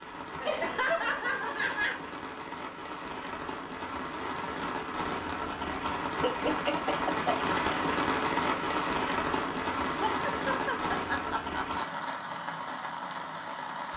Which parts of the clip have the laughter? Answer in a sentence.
The laughter can be heard from 0.4 to 2.0 s, from 6.2 to 7.4 s and from 9.8 to 12.1 s.